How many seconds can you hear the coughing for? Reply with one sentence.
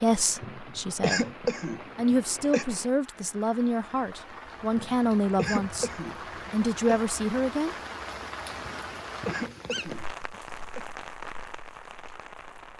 You can hear the coughing for 7 seconds altogether.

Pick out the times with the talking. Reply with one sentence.
You can hear the talking from 0.0 to 1.2 s, from 1.9 to 5.9 s and from 6.5 to 7.8 s.